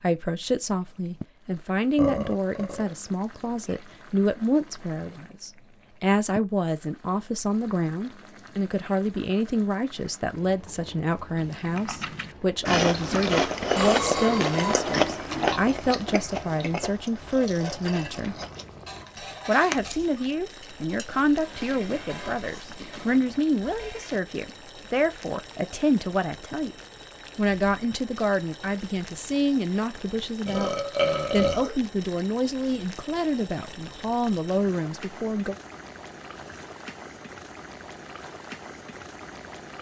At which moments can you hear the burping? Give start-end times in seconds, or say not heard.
1.9-2.9, 13.8-15.7, 30.4-31.8.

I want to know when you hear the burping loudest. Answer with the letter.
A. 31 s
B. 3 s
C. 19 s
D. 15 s
A.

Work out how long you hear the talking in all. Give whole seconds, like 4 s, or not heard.
34 s.